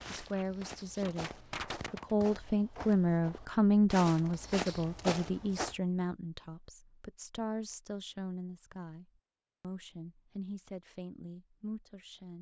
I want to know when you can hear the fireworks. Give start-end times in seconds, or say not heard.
0.0-2.1.